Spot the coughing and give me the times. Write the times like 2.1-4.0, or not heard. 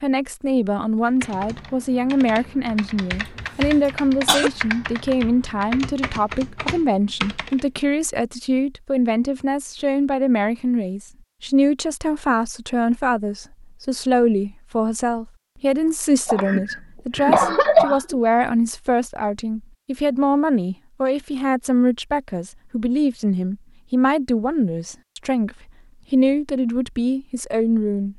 3.4-4.5, 16.2-18.2.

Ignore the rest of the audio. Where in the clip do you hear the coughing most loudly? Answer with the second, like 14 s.
18 s.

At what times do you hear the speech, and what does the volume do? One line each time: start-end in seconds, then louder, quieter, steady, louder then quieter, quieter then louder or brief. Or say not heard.
0.0-28.1 steady.